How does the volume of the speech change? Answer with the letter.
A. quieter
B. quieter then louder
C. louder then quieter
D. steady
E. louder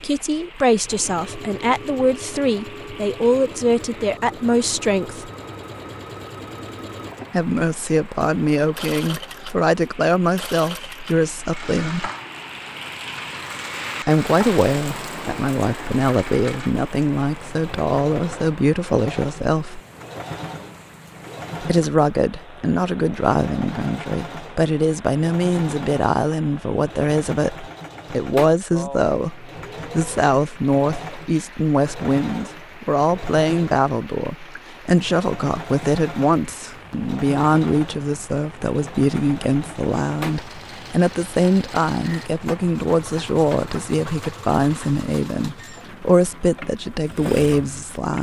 D.